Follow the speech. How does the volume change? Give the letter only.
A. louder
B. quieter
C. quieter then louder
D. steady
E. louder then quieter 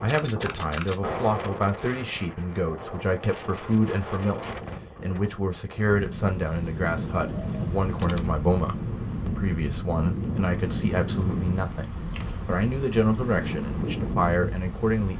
D.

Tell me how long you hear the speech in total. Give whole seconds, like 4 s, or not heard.
15 s.